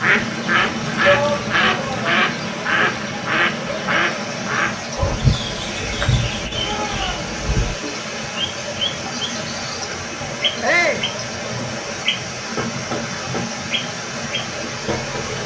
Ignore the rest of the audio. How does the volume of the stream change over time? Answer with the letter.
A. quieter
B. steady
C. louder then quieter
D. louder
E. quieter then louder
B.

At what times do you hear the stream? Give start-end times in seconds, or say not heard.
0.0-15.4.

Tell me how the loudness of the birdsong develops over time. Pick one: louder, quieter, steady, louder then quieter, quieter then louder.
quieter.